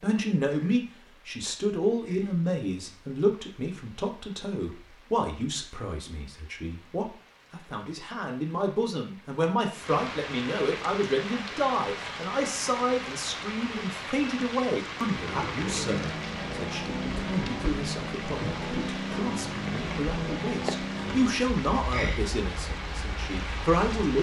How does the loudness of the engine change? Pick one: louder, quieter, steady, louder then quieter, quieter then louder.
quieter.